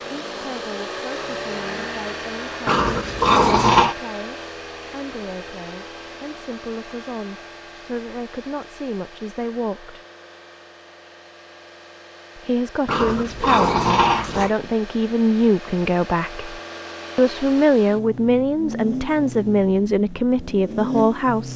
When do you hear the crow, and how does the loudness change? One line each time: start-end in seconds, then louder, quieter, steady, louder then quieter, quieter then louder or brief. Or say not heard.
not heard.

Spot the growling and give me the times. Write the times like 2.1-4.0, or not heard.
2.6-4.0, 12.8-14.5.